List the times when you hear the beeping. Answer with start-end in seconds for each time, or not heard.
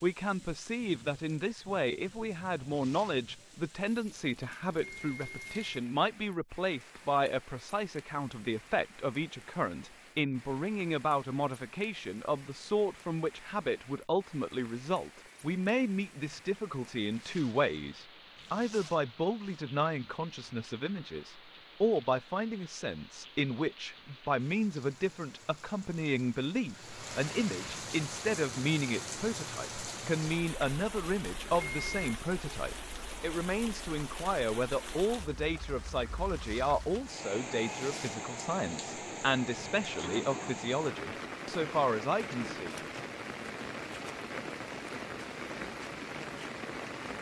4.7-5.8, 31.4-32.2.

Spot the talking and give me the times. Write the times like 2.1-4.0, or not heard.
0.0-42.8.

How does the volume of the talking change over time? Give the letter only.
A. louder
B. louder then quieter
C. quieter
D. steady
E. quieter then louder
D.